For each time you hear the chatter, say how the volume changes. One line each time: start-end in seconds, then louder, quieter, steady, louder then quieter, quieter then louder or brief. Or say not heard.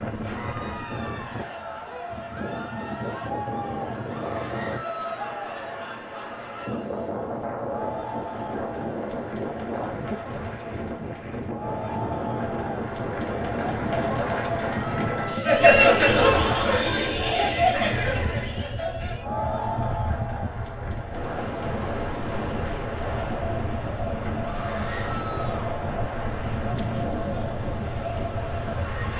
0.1-29.1 louder then quieter.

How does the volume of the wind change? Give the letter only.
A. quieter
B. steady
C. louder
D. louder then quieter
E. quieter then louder
B.